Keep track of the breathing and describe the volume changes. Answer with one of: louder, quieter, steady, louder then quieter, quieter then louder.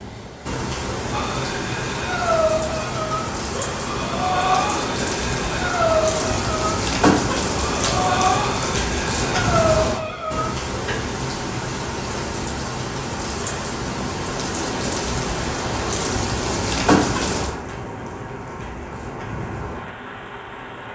steady.